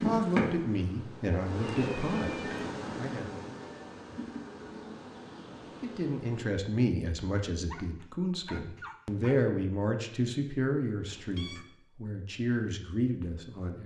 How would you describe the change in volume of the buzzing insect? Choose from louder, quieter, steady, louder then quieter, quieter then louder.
quieter.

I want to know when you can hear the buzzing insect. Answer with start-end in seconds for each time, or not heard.
0.0-6.5.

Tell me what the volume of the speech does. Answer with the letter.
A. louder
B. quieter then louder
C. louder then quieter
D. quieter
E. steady
E.